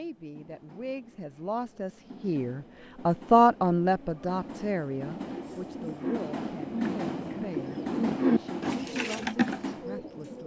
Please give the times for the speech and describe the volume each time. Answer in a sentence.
The speech can be heard from 0.0 to 10.4 s, getting louder then quieter.